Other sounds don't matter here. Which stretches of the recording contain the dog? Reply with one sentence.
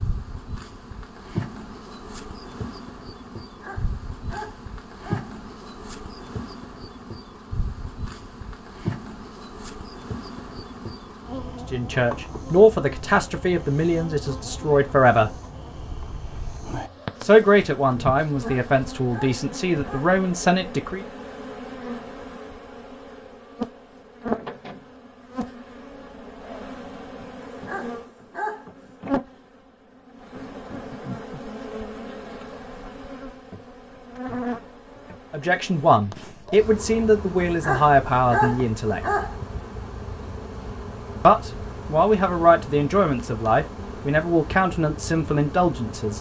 You can hear the dog from 3.6 to 5.3 s, from 18.4 to 20.1 s, from 27.6 to 28.6 s and from 37.4 to 39.4 s.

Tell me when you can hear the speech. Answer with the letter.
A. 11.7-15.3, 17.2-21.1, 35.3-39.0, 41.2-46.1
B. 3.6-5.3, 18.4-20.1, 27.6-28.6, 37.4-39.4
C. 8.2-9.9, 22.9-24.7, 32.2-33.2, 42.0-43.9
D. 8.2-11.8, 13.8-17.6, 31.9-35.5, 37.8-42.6
A.